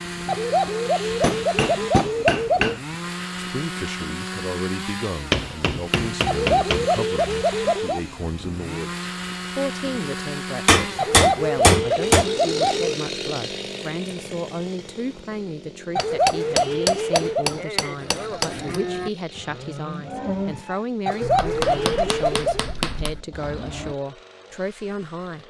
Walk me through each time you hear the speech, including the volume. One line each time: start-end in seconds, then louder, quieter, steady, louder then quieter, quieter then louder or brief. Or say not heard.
3.4-25.4 steady.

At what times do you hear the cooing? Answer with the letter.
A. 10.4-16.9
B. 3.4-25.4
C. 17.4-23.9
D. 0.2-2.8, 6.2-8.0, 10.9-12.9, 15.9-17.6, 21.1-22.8
D.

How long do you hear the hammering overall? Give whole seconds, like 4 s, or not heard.
9 s.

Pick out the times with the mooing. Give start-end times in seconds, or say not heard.
17.4-23.9.